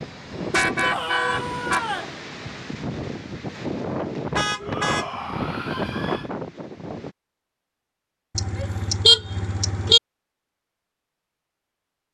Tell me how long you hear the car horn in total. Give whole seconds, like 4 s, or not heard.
4 s.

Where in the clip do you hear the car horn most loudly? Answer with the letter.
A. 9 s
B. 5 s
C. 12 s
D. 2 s
A.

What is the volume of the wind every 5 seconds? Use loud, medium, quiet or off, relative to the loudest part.
loud, loud, off.